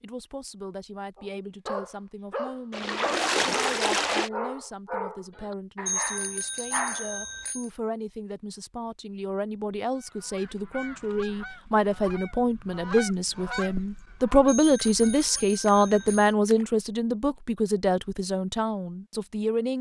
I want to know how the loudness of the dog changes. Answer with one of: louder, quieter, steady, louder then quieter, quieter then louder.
steady.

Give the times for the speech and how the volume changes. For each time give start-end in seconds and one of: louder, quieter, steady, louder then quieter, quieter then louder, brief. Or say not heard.
0.0-19.7 louder.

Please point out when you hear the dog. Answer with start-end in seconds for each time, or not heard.
1.1-7.2.